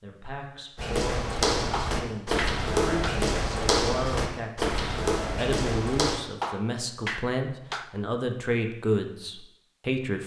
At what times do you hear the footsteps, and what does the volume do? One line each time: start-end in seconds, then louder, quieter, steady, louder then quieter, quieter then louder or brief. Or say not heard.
0.8-6.2 steady.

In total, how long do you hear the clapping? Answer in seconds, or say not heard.
3 s.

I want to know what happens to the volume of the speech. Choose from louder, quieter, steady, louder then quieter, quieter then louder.
louder.